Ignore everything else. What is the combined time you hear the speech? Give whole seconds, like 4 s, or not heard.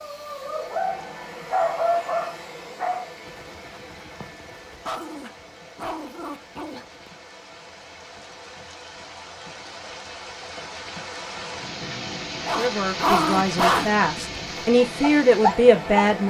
4 s.